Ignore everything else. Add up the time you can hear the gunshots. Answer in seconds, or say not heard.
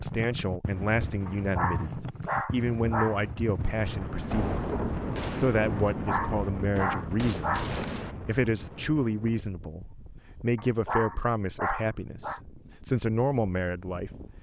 4 s.